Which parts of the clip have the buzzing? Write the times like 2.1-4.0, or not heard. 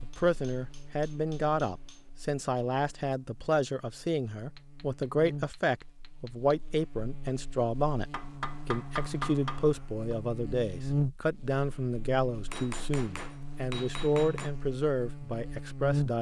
0.0-16.1.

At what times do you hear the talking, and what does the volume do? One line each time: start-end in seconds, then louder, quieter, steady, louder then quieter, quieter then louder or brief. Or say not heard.
0.0-16.1 steady.